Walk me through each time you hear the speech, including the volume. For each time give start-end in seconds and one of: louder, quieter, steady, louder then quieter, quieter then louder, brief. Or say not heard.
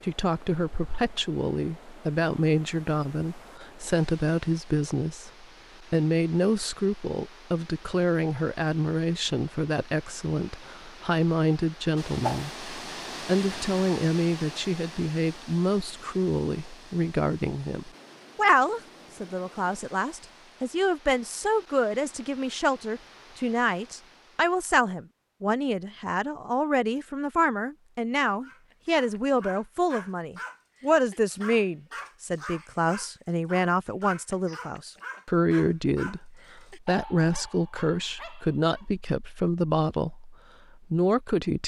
0.0-41.6 steady.